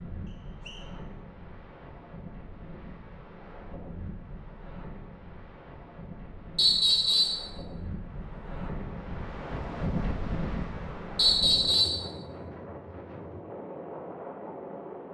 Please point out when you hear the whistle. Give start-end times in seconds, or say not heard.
0.2-0.9, 6.5-7.4, 11.2-12.0.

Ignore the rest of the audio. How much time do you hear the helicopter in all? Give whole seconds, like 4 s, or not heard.
not heard.